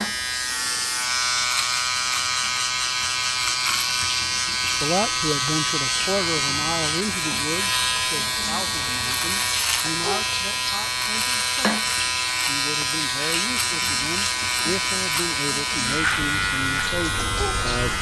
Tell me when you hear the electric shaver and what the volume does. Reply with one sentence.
The electric shaver can be heard from 0.0 to 17.9 s, at a steady volume.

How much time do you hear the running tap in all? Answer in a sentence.
The running tap can be heard for 18 seconds in total.